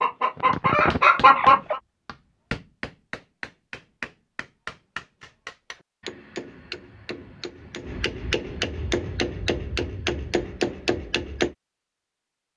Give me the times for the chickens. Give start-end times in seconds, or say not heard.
0.0-1.8.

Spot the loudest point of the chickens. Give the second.
1 s.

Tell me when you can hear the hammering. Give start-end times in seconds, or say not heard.
0.5-11.6.